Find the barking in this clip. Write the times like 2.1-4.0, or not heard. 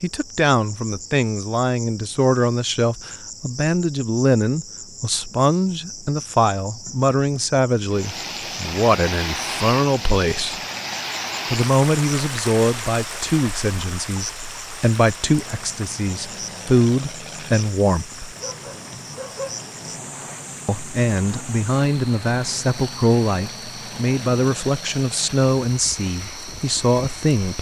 18.1-19.6.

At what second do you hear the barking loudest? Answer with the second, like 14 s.
19 s.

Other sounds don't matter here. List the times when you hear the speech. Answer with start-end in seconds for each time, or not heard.
0.0-10.6, 11.5-18.3, 20.6-27.5.